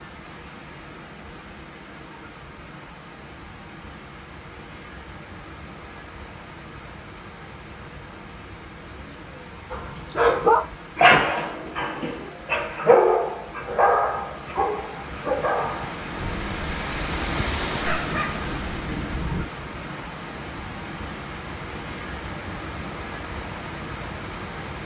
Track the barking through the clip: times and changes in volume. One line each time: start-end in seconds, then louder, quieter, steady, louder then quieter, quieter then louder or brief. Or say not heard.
9.7-19.4 quieter.